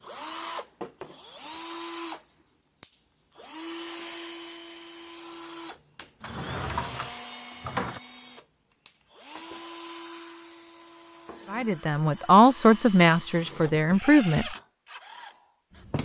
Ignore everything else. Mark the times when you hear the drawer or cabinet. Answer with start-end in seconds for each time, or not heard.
6.2-8.0.